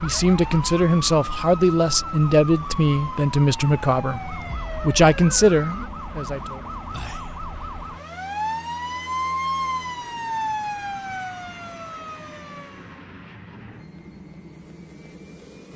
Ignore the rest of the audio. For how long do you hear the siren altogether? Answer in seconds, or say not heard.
13 s.